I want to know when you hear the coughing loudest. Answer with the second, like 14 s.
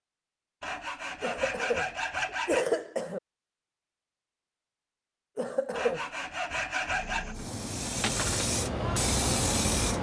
3 s.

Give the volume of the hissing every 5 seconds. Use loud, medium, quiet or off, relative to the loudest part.
off, loud.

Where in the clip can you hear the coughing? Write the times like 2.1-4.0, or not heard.
1.2-3.2, 5.3-6.0.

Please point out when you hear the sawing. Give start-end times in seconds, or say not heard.
0.6-2.6, 5.8-7.3.